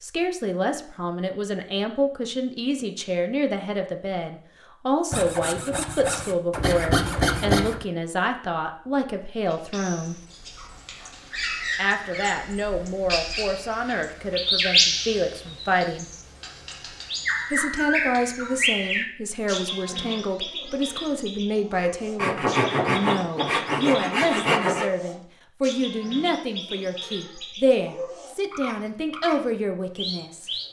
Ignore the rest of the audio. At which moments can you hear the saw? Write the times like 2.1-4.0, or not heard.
5.1-7.8, 22.1-24.9.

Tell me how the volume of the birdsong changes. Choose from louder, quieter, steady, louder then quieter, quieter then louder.
louder then quieter.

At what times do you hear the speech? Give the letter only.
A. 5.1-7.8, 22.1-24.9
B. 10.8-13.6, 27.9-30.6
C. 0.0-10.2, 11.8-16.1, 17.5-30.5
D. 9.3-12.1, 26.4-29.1
C.